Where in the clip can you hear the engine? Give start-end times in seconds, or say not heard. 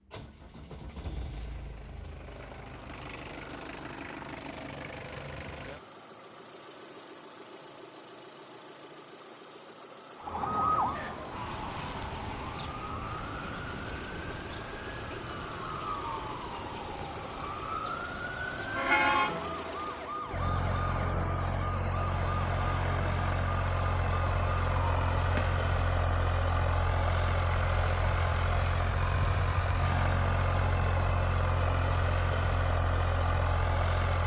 0.0-34.2.